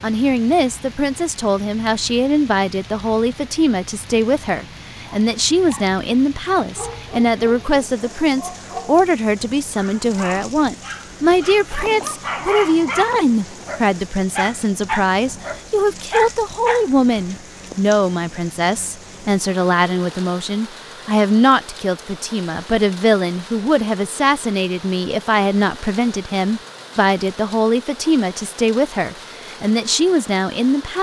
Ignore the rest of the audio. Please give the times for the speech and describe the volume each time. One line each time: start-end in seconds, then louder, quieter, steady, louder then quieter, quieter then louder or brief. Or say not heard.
0.0-30.9 steady.